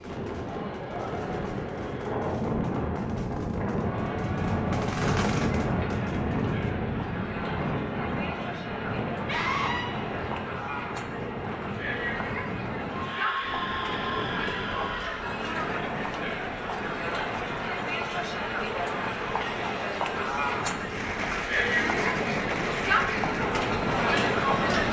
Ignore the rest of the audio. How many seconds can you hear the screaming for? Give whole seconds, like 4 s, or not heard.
3 s.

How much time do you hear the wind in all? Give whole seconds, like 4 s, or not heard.
25 s.